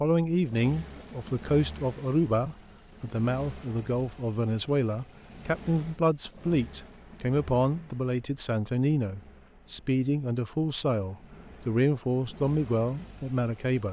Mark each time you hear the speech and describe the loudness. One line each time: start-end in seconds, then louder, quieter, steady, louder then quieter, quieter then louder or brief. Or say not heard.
0.0-13.8 steady.